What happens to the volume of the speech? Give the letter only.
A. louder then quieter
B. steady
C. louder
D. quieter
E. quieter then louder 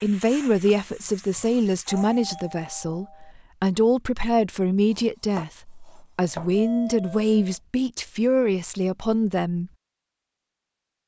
B.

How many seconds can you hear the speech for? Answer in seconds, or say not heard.
10 s.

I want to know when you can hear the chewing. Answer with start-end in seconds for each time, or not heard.
not heard.